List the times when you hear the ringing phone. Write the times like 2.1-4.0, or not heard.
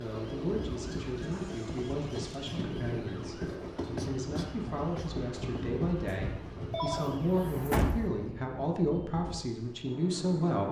6.0-7.1.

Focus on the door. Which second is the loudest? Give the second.
8 s.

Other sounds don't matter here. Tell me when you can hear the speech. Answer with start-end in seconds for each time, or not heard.
0.0-10.6.